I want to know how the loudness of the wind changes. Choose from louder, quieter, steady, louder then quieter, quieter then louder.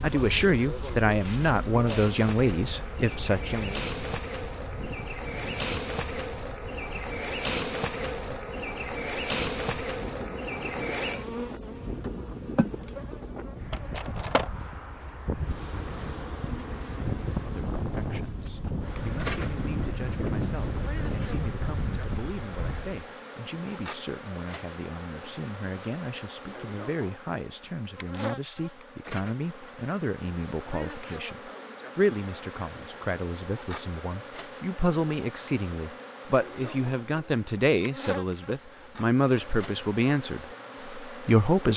louder.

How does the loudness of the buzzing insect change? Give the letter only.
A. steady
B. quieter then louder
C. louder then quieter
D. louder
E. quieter
E.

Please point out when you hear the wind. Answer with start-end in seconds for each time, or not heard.
0.1-23.1.